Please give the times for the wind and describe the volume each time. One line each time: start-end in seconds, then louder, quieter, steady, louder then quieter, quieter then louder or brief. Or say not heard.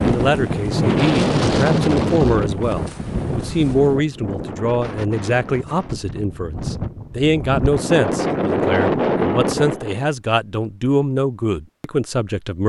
0.0-10.1 quieter then louder.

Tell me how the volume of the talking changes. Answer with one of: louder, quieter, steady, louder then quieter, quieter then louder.
steady.